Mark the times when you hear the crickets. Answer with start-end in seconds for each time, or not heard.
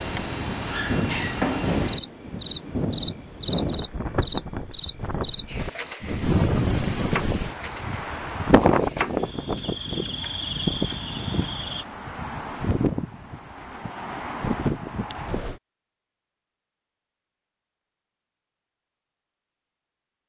0.0-11.8.